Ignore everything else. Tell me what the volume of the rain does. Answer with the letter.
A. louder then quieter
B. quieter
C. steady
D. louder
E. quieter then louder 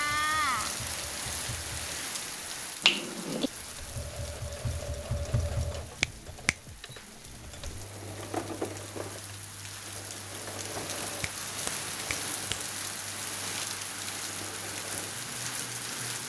E.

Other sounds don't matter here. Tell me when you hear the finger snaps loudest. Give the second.
3 s.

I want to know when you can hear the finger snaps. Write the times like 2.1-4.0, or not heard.
2.8-3.5, 6.0-6.5, 11.2-12.8.